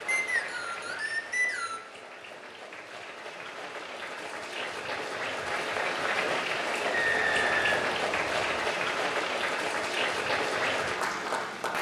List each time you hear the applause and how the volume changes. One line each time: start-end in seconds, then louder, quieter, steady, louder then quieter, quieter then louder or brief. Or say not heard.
0.0-11.7 louder.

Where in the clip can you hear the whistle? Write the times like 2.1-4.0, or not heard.
0.1-1.8, 6.9-8.7.